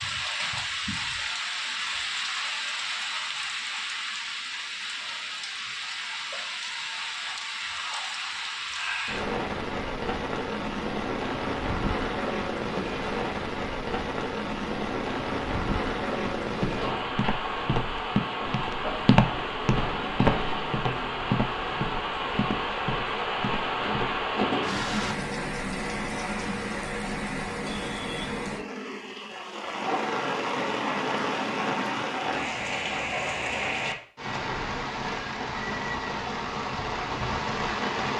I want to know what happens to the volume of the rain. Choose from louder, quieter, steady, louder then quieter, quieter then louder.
steady.